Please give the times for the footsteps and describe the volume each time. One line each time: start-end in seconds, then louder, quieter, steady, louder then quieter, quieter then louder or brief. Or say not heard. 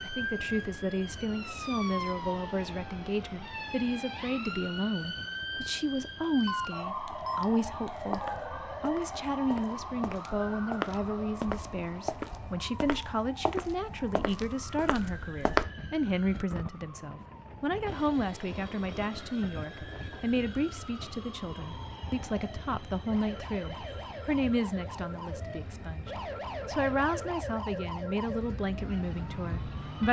7.9-15.7 louder then quieter.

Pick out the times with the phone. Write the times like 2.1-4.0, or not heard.
6.4-8.3.